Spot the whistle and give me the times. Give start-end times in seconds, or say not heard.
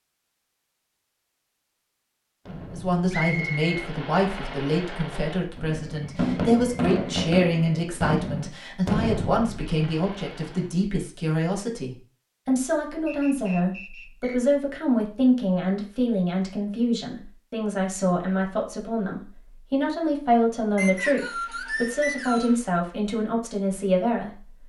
3.1-3.6, 13.1-14.4, 20.8-22.6.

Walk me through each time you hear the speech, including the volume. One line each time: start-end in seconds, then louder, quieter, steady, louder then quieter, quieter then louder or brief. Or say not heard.
2.7-24.6 steady.